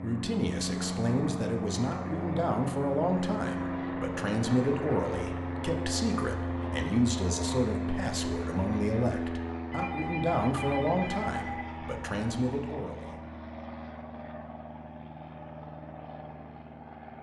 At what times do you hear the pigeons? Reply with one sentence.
You can't hear the pigeons here.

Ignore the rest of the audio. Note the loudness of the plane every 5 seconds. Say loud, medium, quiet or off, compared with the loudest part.
loud, loud, medium, medium.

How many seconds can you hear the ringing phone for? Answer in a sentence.
The ringing phone can be heard for 2 seconds in total.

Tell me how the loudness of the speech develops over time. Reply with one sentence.
The loudness of the speech stays about the same.